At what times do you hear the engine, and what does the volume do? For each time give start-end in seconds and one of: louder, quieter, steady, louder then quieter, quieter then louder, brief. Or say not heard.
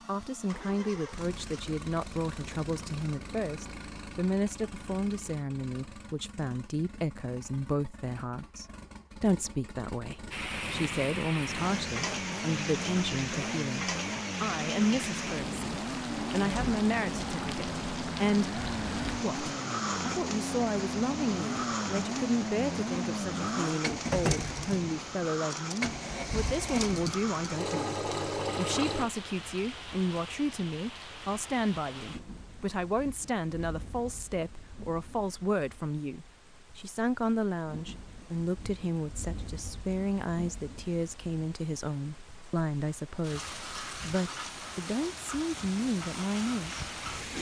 0.0-29.1 louder.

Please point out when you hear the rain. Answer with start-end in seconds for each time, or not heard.
10.3-47.3.